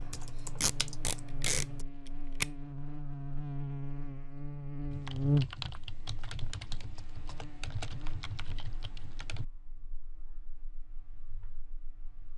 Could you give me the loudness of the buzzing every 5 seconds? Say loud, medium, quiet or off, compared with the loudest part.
medium, loud, quiet.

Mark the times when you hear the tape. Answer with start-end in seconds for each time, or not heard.
0.6-2.5.